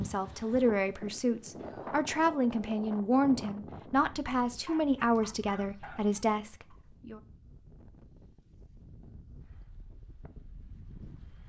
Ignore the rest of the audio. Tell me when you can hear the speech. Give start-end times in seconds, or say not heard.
0.0-7.2.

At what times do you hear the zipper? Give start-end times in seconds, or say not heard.
not heard.